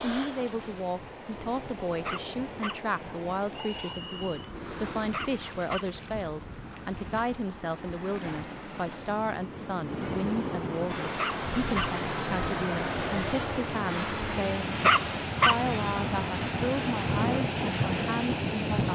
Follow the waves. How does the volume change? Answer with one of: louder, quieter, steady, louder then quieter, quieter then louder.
louder.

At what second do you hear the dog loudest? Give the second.
15 s.